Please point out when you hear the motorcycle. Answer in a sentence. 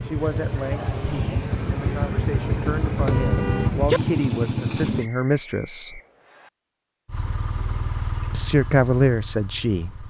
The motorcycle can be heard from 0.0 to 5.1 s and from 7.0 to 10.0 s.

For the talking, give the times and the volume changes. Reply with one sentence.
The talking can be heard from 0.0 to 6.0 s, getting louder; and briefly from 8.3 to 10.0 s.